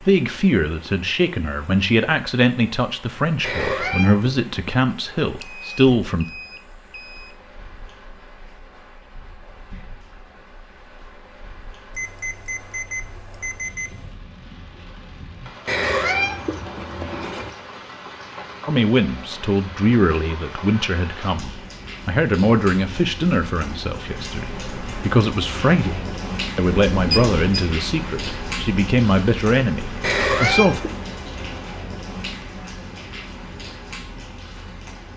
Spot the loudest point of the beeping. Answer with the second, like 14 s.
27 s.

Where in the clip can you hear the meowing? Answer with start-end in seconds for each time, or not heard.
3.4-4.3, 15.7-17.5, 30.0-30.9.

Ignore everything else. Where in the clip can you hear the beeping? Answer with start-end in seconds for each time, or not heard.
5.3-7.3, 11.9-14.2, 26.6-27.6.